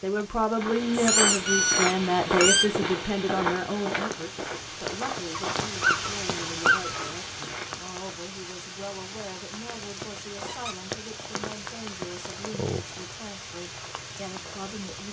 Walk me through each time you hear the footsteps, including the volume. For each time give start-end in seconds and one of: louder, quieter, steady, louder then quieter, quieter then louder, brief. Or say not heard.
0.6-7.8 quieter.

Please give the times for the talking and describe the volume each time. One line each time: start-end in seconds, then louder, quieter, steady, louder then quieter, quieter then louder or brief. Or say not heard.
0.0-15.0 quieter.